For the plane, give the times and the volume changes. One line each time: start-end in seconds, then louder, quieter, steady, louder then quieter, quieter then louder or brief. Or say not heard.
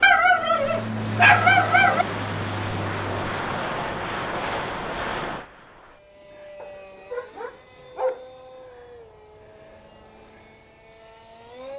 0.0-11.7 quieter.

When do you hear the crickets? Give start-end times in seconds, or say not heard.
not heard.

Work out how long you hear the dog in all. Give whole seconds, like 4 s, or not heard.
4 s.